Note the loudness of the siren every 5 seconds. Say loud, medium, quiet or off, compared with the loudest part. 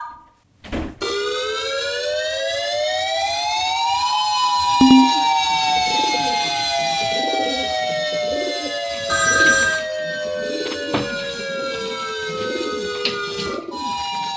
loud, loud, medium.